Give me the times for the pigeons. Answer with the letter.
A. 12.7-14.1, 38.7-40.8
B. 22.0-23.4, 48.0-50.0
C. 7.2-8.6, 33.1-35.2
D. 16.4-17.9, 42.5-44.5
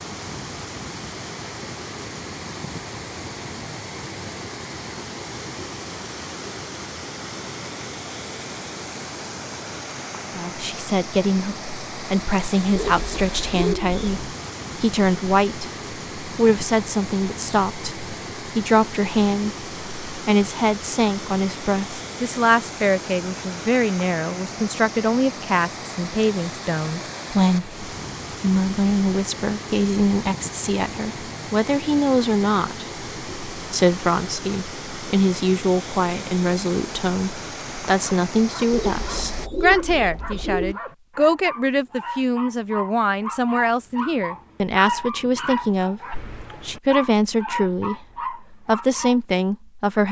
A.